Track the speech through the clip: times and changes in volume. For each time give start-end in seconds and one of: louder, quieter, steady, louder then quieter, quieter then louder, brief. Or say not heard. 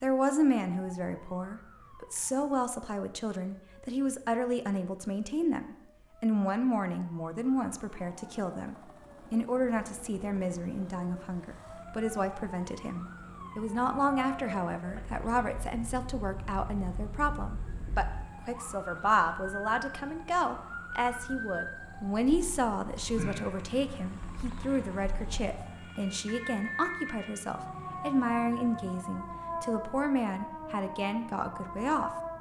0.0-32.1 steady.